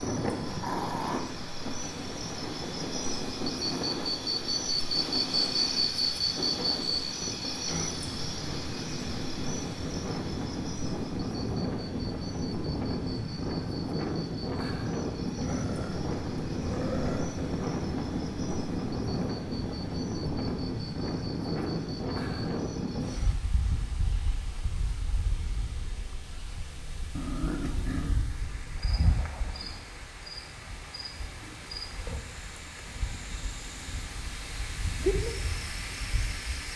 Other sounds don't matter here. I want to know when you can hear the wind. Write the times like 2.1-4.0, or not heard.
0.0-36.7.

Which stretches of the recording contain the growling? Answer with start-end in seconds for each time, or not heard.
0.5-1.2, 15.4-17.4, 27.1-28.2.